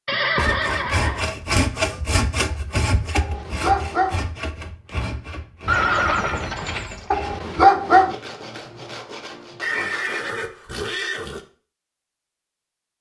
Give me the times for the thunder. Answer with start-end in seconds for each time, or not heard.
not heard.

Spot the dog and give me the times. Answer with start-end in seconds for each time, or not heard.
3.1-4.2, 7.1-8.2.